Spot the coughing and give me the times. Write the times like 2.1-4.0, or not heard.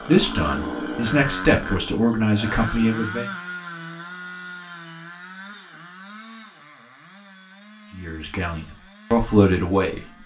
not heard.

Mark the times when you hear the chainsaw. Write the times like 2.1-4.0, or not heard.
0.0-10.2.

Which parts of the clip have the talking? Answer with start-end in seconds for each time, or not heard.
0.1-3.3, 8.0-10.2.